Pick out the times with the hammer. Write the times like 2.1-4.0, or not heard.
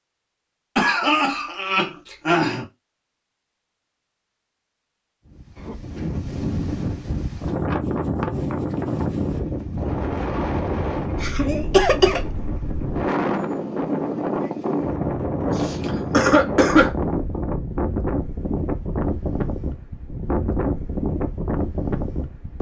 not heard.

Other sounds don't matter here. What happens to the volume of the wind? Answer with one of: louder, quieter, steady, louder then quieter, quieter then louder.
steady.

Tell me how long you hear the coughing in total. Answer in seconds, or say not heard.
4 s.